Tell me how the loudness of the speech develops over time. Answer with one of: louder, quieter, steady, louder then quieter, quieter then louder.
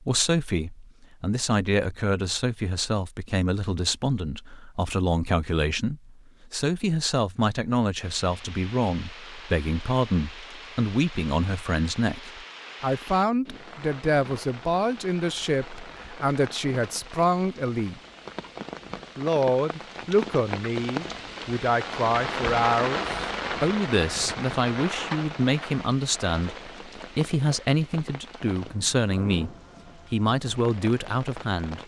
steady.